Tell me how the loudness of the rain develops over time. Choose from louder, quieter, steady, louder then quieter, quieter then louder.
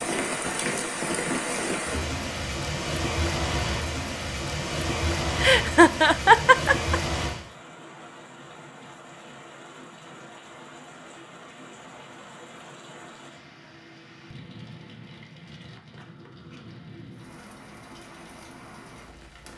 quieter.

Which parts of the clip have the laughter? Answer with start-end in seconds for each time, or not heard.
5.4-7.0.